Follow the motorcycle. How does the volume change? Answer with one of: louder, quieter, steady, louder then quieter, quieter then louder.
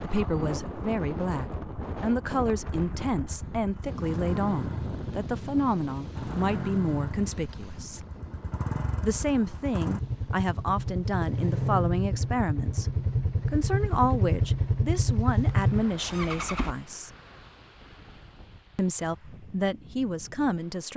louder.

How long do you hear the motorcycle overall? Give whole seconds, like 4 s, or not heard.
17 s.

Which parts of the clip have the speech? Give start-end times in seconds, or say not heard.
0.0-8.1, 9.0-17.1, 18.8-20.9.